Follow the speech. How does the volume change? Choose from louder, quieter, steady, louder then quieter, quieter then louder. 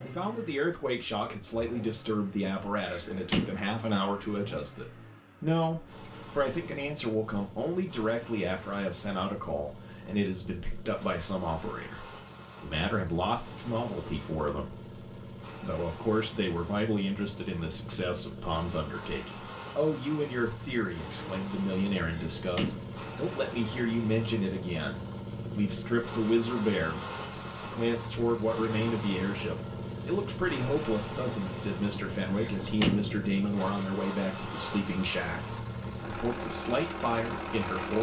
steady.